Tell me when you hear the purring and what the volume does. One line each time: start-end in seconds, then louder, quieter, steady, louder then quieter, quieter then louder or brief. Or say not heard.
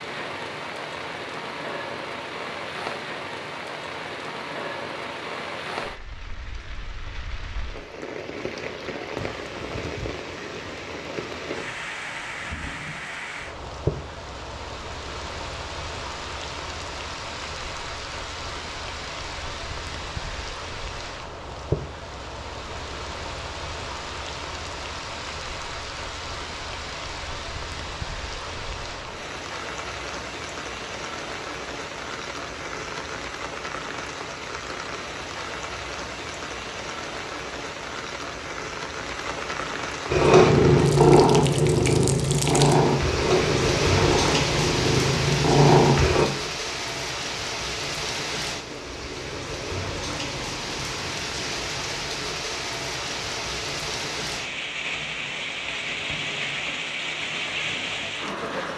40.1-46.2 quieter then louder.